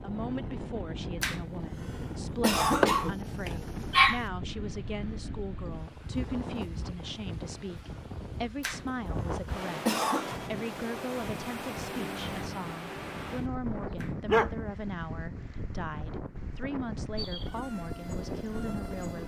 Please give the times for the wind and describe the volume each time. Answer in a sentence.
The wind can be heard from 0.0 to 19.2 s, at a steady volume.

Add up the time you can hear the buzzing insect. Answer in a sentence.
The buzzing insect can be heard for 2 seconds in total.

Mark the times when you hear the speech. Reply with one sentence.
You can hear the speech from 0.0 to 19.2 s.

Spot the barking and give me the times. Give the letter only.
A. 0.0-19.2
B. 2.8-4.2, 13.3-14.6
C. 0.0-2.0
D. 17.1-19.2
B.